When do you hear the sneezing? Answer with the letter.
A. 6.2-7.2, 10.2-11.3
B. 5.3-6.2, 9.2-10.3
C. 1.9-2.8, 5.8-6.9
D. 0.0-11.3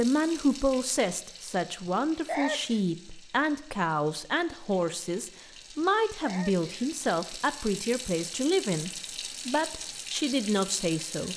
C.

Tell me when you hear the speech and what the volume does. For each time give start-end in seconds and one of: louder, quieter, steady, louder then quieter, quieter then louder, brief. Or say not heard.
0.0-11.3 steady.